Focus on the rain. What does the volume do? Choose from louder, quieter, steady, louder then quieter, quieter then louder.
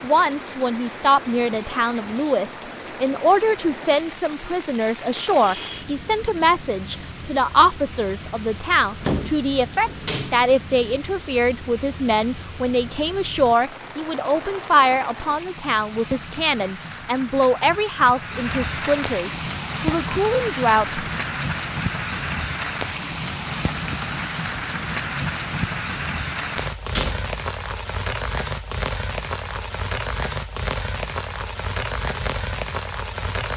louder.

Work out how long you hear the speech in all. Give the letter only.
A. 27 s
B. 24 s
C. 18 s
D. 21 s
D.